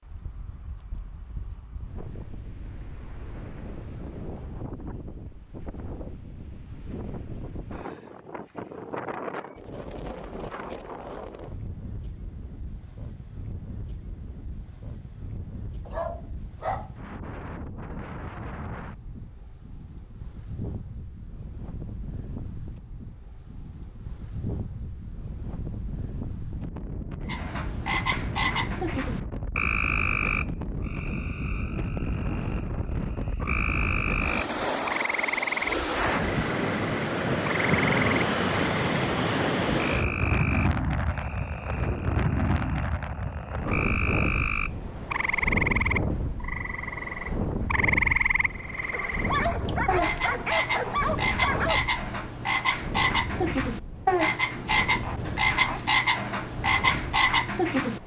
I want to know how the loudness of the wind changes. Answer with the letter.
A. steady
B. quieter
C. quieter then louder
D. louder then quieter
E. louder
D.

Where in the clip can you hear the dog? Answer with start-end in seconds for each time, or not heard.
15.8-16.9, 48.9-51.8.